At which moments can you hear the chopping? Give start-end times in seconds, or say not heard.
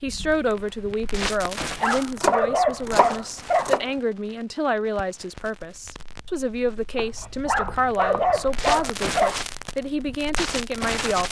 2.1-3.9, 7.0-8.8.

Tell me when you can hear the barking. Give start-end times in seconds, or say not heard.
1.8-3.8, 7.5-9.4.